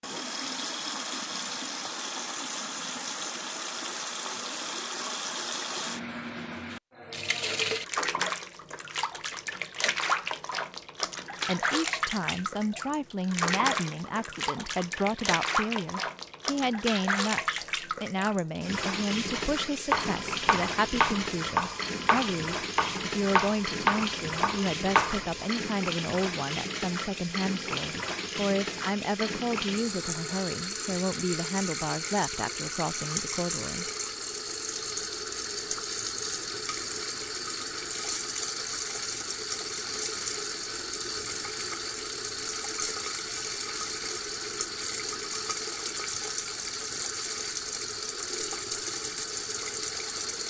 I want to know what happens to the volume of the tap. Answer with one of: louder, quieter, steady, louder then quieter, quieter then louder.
steady.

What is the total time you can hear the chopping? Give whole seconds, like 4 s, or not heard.
7 s.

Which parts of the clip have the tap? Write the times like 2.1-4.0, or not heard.
0.0-50.4.